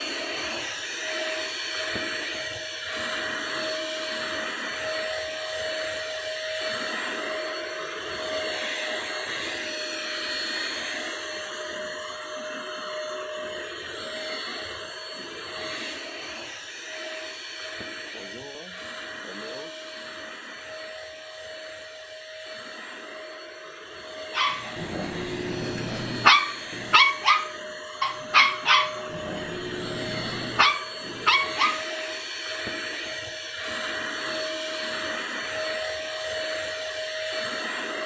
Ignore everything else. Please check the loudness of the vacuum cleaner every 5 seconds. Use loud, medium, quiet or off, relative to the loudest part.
loud, loud, loud, medium, medium, medium, loud, loud.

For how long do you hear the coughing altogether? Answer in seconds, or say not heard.
2 s.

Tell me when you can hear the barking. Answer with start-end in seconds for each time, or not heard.
24.4-31.9.